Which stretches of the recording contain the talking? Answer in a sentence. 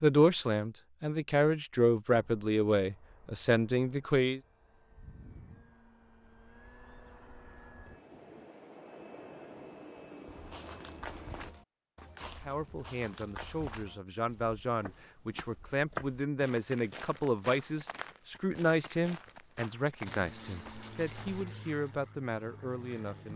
The talking can be heard from 0.0 to 4.4 s and from 12.3 to 23.3 s.